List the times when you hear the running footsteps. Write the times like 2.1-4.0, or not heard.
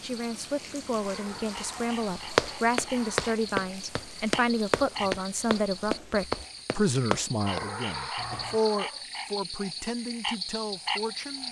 2.4-8.6.